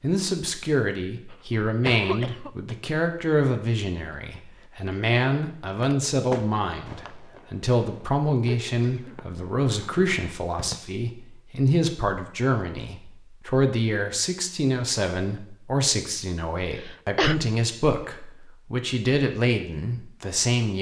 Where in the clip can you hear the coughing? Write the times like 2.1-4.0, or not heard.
1.3-2.8, 8.4-9.2, 16.7-17.4.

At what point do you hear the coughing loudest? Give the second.
17 s.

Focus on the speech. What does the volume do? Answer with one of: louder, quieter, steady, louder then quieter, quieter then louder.
steady.